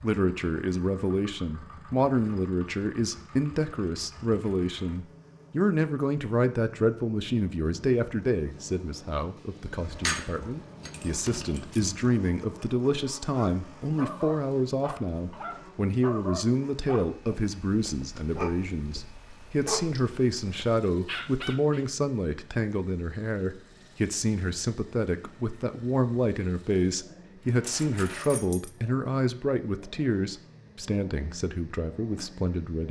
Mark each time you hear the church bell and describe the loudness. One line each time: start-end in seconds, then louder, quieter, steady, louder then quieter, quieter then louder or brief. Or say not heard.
not heard.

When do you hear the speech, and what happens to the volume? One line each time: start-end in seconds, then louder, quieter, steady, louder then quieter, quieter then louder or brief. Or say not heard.
0.0-32.8 steady.